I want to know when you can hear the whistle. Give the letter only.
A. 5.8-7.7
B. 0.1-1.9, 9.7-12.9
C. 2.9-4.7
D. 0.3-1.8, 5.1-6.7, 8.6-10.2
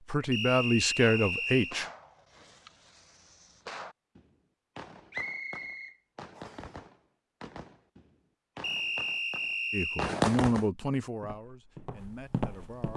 D.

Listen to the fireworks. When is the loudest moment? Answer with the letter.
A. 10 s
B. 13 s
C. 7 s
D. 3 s
A.